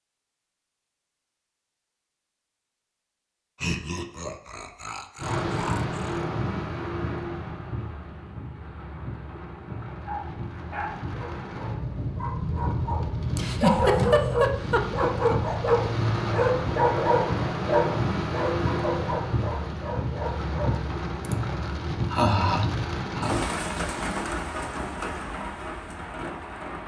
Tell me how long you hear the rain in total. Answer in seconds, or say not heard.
22 s.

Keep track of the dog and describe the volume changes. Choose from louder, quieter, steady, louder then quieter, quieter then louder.
louder then quieter.